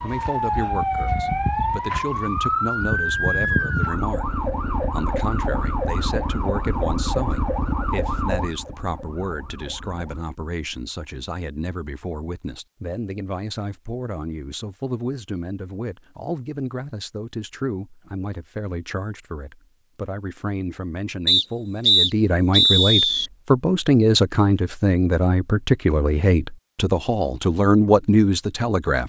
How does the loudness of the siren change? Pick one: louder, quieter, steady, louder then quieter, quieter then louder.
quieter.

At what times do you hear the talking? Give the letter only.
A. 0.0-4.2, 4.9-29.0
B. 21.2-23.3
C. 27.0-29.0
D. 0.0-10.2
A.